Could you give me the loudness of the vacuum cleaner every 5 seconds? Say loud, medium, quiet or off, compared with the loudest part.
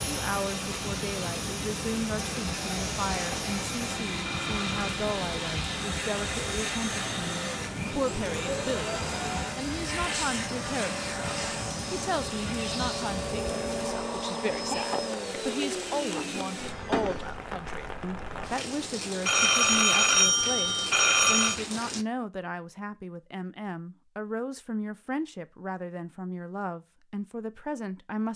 loud, loud, loud, loud, off, off.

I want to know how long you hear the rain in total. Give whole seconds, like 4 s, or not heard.
22 s.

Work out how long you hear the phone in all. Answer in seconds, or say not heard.
3 s.